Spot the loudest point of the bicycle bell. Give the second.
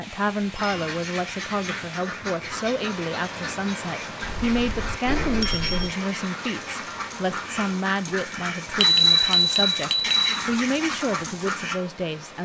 9 s.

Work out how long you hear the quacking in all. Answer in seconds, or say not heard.
11 s.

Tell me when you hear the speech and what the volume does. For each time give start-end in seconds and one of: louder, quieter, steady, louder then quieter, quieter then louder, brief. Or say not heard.
0.0-12.3 steady.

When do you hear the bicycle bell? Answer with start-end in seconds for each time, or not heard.
0.6-1.0, 4.2-6.0, 8.8-10.2.